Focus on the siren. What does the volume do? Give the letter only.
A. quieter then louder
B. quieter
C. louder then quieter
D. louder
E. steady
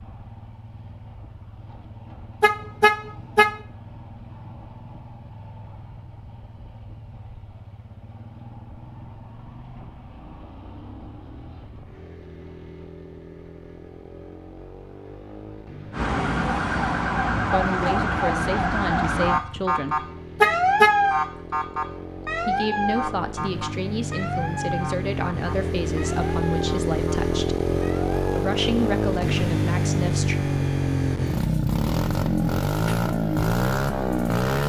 B.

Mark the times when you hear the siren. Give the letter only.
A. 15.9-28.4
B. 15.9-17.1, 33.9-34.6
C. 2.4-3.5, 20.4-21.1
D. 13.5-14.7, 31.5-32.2
A.